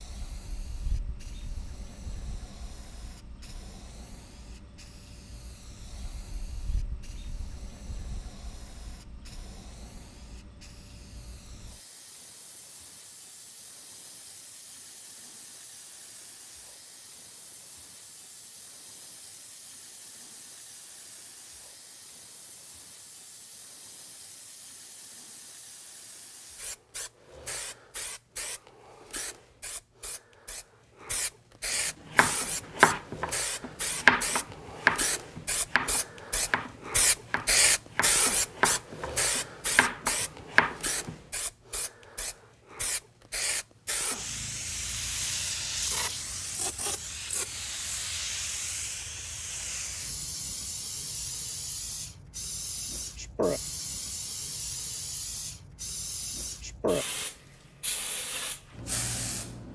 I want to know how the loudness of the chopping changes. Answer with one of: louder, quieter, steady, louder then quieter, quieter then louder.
quieter then louder.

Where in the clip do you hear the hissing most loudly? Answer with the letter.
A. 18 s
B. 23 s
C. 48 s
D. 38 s
D.